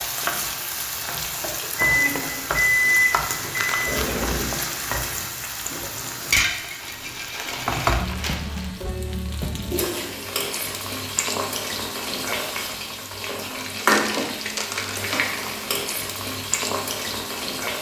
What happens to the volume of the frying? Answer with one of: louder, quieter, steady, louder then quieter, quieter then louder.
steady.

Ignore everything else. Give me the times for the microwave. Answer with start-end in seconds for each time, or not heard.
1.8-4.5.